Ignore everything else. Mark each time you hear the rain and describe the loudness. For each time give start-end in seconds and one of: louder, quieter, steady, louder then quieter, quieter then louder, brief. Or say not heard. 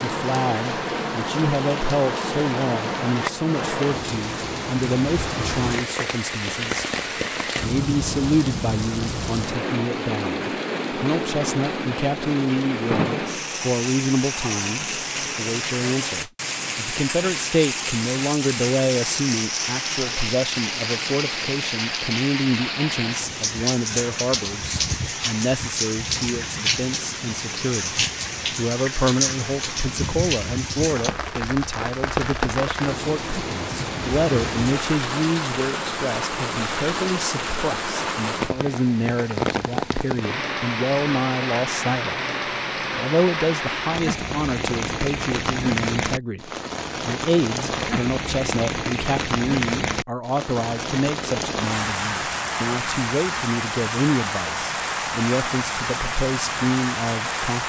0.0-57.6 steady.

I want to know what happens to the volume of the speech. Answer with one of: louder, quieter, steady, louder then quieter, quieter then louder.
steady.